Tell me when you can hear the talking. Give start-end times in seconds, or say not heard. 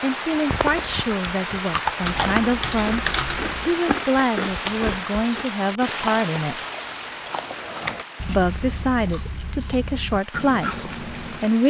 0.0-3.0, 3.6-6.6, 8.2-11.6.